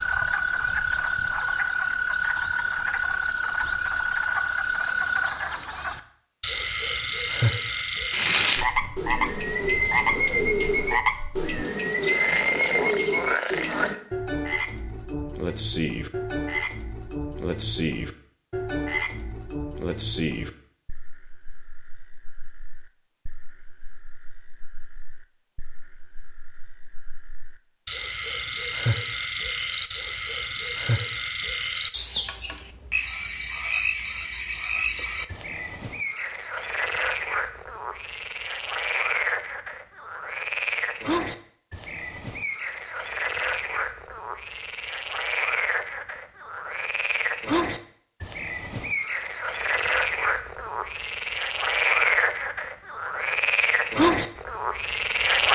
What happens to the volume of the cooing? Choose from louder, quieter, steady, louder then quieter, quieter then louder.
steady.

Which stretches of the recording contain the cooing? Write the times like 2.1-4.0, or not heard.
8.1-13.9.